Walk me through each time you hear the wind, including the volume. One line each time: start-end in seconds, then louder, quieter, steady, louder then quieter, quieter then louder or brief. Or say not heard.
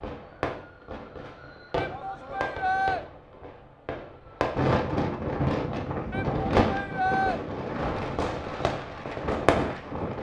4.5-10.1 quieter.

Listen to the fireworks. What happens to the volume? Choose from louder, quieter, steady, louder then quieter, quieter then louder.
louder.